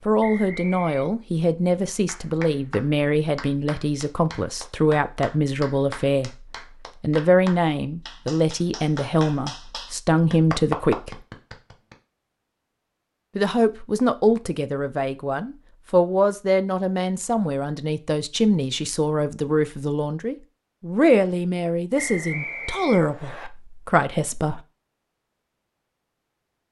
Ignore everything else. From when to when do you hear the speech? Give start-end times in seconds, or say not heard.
0.1-11.2, 13.3-24.6.